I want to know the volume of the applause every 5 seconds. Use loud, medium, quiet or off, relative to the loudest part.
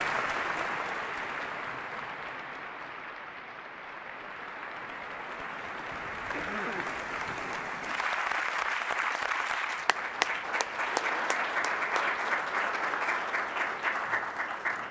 medium, loud, loud.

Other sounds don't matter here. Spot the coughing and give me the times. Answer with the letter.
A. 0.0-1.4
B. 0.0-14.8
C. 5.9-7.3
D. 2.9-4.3
C.